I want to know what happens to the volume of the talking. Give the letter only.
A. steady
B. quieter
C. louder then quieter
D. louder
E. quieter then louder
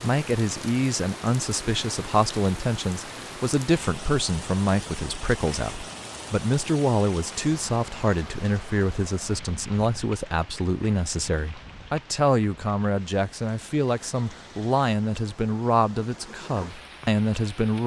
A.